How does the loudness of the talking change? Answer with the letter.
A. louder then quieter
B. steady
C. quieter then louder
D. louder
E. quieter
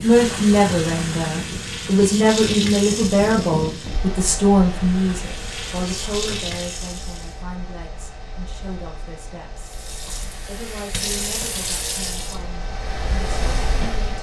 E.